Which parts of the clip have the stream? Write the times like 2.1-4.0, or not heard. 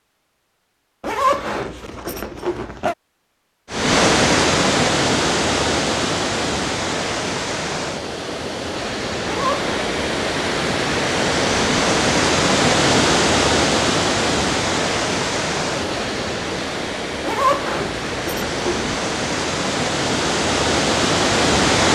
3.7-21.9.